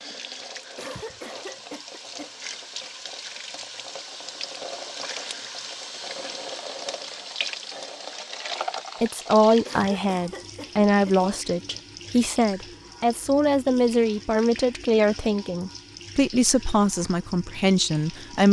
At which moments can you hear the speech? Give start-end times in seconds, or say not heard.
9.0-18.4.